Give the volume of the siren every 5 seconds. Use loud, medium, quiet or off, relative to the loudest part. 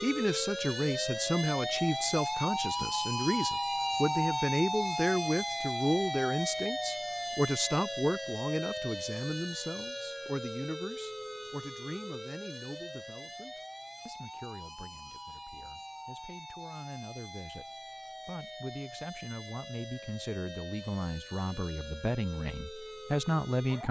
loud, loud, medium, quiet, quiet.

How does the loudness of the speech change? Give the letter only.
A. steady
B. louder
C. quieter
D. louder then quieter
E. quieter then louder
E.